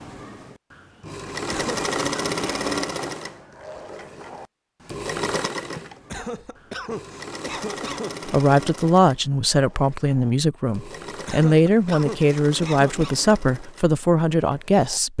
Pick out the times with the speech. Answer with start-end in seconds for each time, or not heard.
8.2-15.1.